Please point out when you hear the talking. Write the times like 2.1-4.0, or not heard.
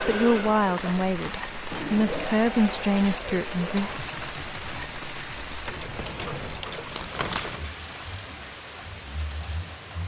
0.0-3.9.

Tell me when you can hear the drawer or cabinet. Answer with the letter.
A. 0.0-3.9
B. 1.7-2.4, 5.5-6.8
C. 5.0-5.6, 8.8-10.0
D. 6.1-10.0
B.